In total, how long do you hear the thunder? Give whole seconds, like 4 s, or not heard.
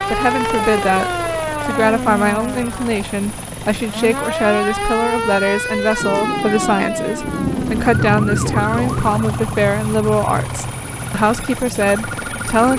3 s.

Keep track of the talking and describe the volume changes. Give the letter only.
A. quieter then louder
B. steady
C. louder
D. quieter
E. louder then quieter
B.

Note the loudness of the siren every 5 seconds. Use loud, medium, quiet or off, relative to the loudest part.
loud, loud, medium.